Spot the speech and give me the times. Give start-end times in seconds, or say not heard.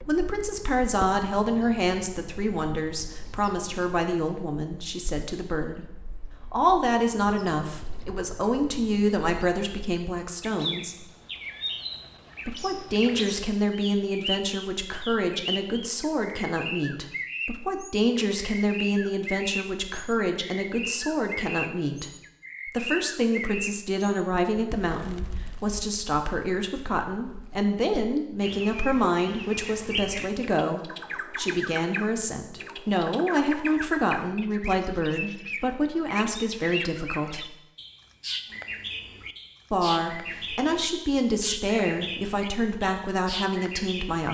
0.1-11.1, 12.4-37.5, 39.7-44.2.